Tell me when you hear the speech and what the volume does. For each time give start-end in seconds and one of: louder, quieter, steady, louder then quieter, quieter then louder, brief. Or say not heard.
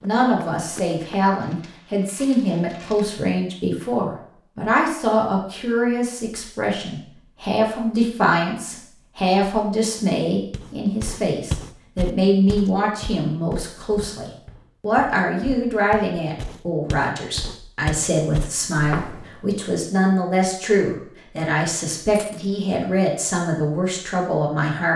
0.0-24.9 steady.